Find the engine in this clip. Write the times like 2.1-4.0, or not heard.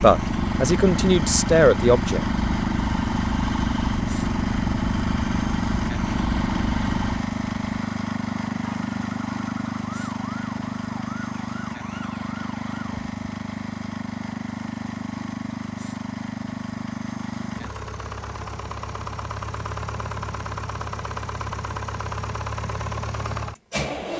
0.0-24.1.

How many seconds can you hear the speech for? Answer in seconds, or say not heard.
2 s.